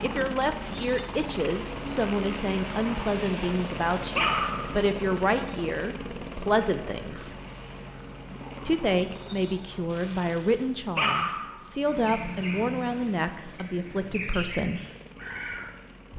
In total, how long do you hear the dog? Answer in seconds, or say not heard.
3 s.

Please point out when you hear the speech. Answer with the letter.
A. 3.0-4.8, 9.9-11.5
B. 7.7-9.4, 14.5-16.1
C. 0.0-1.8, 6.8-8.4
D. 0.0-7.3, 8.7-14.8
D.